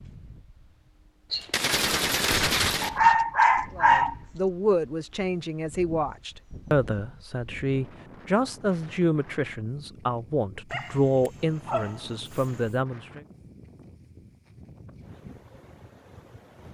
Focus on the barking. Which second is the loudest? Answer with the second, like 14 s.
3 s.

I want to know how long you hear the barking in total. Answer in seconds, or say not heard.
3 s.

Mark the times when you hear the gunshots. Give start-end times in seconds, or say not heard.
1.3-3.0.